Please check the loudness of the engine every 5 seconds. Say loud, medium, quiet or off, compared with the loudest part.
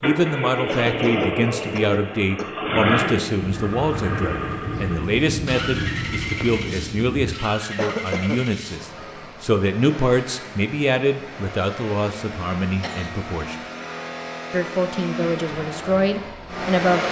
loud, medium, medium, loud.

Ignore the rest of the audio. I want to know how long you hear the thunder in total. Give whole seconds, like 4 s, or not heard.
4 s.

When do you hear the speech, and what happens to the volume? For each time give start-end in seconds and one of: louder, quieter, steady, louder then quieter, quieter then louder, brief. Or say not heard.
0.0-13.6 steady
14.5-17.0 brief.